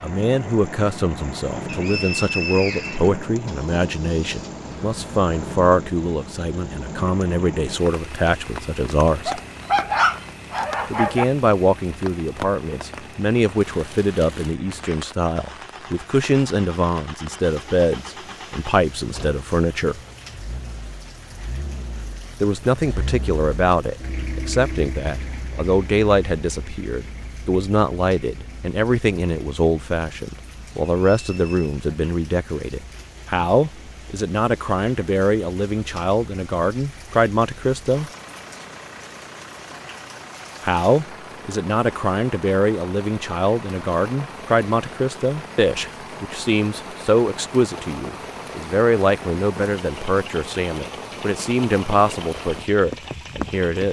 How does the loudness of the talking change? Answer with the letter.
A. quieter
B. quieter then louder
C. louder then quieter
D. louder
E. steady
E.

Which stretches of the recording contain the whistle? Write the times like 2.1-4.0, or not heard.
1.6-3.1, 31.1-31.8.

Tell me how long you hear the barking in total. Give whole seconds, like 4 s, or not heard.
2 s.